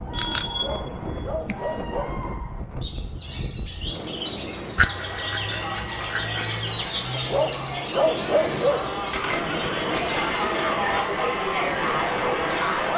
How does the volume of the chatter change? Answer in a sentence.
The loudness of the chatter goes up.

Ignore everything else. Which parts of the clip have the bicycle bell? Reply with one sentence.
The bicycle bell can be heard from 0.1 to 1.8 s, from 4.8 to 6.7 s and from 9.1 to 11.1 s.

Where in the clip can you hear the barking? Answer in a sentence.
You can hear the barking from 0.5 to 2.1 s and from 7.1 to 8.8 s.